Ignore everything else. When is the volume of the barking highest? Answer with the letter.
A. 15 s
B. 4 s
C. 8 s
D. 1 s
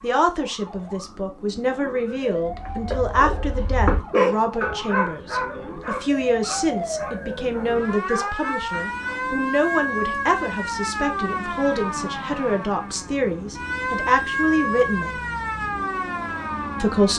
B.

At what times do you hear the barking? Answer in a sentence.
The barking can be heard from 2.5 to 9.2 s.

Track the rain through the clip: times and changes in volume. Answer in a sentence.
You can't hear the rain here.